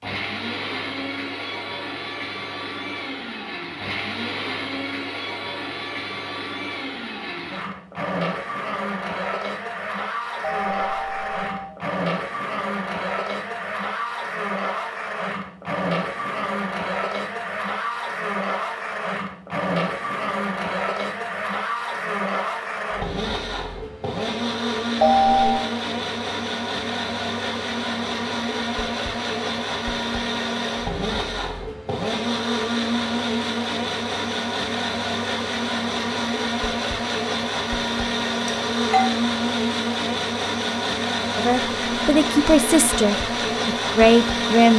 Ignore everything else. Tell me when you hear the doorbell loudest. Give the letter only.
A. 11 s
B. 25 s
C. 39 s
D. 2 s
B.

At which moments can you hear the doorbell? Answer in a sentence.
The doorbell can be heard from 10.4 to 11.7 s, from 25.0 to 25.6 s and from 38.5 to 39.1 s.